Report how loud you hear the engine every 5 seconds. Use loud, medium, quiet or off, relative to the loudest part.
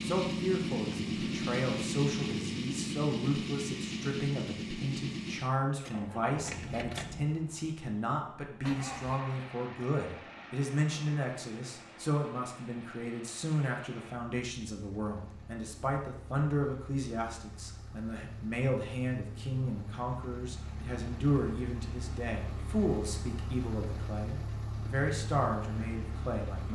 loud, medium, quiet, quiet, medium, medium.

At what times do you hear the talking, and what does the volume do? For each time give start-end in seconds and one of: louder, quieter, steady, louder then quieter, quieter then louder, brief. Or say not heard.
0.0-26.7 steady.